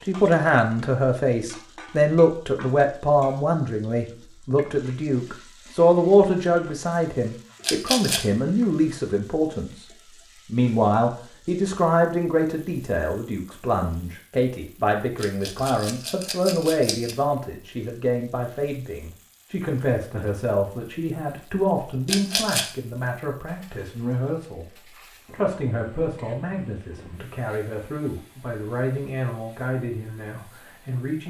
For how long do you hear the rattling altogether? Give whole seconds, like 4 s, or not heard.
3 s.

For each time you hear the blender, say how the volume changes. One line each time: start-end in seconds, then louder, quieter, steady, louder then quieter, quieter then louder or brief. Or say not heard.
not heard.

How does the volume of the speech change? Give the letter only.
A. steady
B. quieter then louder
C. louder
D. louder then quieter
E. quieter
E.